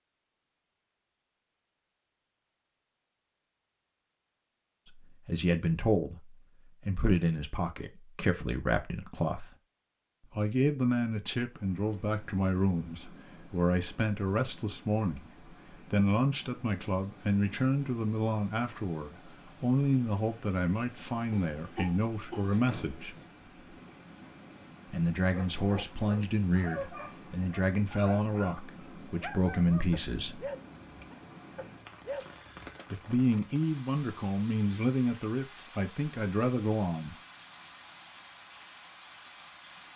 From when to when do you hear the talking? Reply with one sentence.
The talking can be heard from 5.0 to 9.6 s, from 10.3 to 23.1 s, from 24.9 to 30.4 s and from 32.9 to 37.1 s.